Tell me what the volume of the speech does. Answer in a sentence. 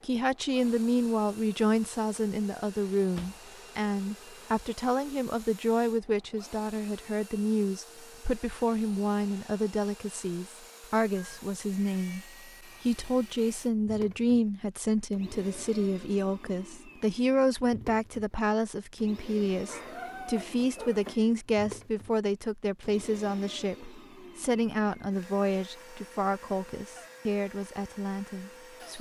The loudness of the speech stays about the same.